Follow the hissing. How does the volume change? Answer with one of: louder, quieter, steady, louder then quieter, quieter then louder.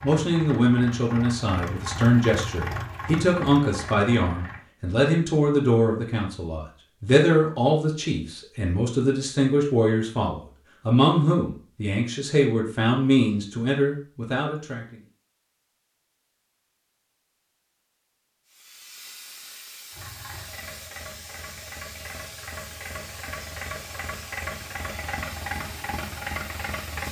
steady.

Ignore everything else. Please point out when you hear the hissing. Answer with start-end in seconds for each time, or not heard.
18.4-27.0.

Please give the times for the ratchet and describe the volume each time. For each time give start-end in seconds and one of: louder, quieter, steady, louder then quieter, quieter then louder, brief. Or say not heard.
not heard.